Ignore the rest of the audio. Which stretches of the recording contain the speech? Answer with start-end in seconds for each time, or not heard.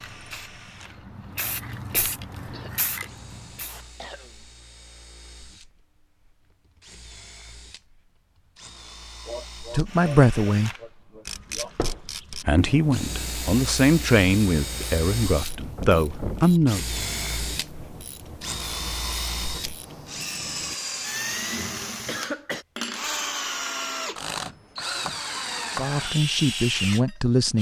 9.7-10.7, 12.4-16.9, 25.8-27.5.